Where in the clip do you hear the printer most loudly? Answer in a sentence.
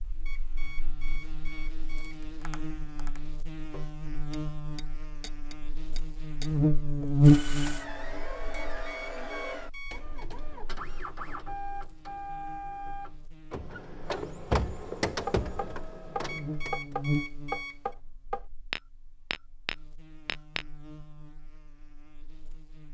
The volume of the printer peaks at 15 seconds.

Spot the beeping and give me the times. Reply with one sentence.
The beeping can be heard from 0.2 to 2.2 s, from 8.5 to 10.2 s and from 16.2 to 17.9 s.